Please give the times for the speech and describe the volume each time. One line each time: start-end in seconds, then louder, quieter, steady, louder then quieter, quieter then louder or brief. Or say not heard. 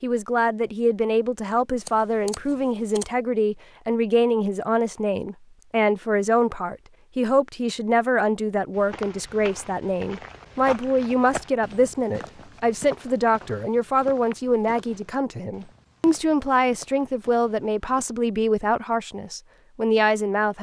0.0-20.5 steady.